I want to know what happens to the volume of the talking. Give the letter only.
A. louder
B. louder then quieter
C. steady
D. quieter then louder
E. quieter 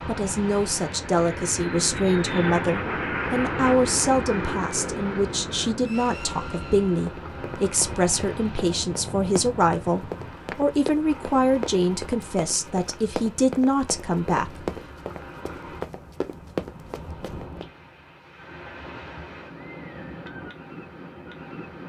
C.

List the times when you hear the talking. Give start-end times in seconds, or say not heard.
0.1-14.7.